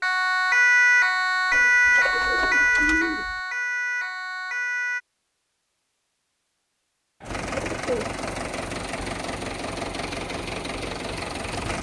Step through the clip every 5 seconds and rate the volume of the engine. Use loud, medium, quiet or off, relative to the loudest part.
off, loud, loud.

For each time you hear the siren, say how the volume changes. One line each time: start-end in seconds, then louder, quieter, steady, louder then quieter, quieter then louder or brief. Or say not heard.
0.0-5.0 quieter.